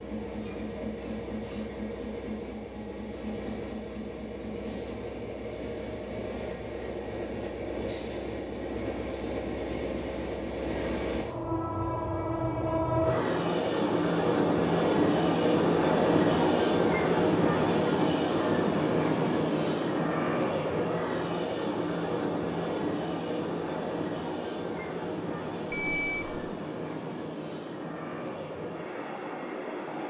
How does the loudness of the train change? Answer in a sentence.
The loudness of the train goes up, then down.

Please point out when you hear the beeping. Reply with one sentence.
You can hear the beeping from 25.7 to 26.5 s.